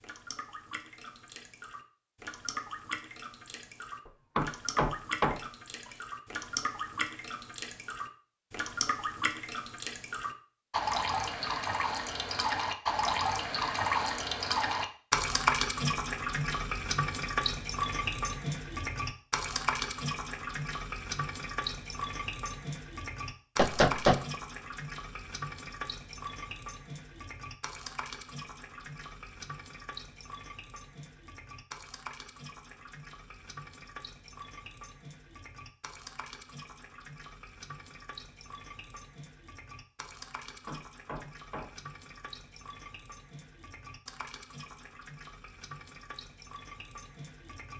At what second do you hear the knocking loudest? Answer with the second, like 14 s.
24 s.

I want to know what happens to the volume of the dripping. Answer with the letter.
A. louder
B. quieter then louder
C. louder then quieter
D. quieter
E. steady
C.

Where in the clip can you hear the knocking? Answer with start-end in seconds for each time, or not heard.
4.3-5.4, 23.6-24.4, 40.6-41.7.